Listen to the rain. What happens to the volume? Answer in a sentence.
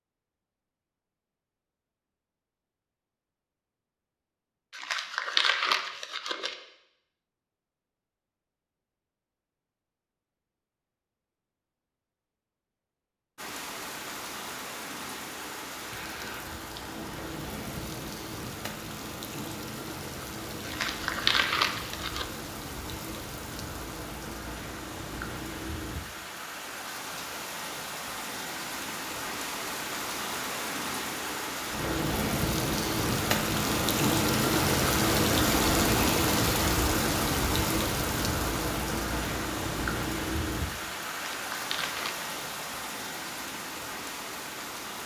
The volume of the rain goes up, then down.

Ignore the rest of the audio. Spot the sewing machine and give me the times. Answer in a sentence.
You can't hear the sewing machine here.